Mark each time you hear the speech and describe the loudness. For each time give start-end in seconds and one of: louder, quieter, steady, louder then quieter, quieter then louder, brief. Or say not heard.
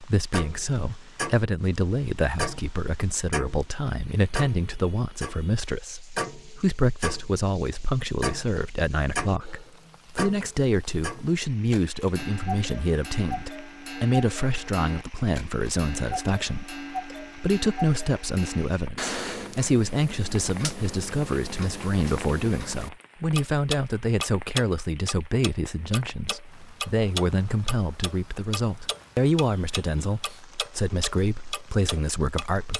0.0-32.7 steady.